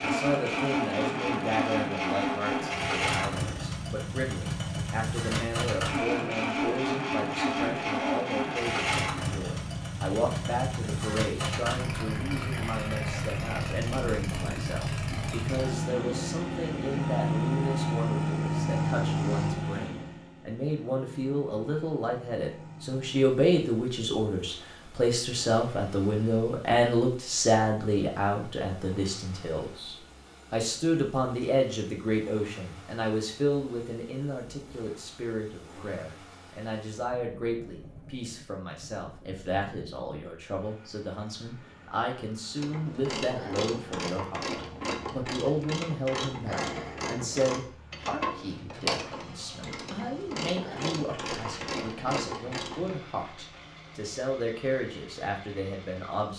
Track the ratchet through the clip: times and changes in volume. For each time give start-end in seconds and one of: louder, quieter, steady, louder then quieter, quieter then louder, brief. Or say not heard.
42.5-53.0 steady.